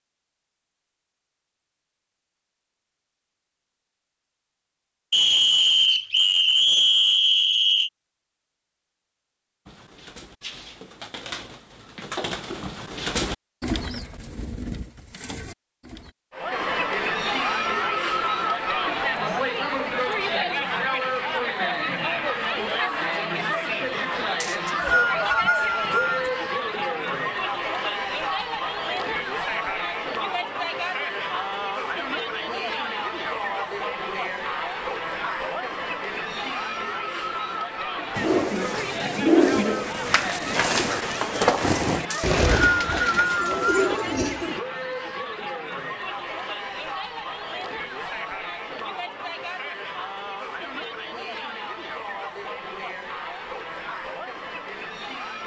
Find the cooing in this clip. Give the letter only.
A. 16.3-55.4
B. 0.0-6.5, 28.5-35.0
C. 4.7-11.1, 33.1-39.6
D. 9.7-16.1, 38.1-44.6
D.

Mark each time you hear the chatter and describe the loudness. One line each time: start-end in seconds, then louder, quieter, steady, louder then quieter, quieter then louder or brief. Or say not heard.
16.3-55.4 quieter.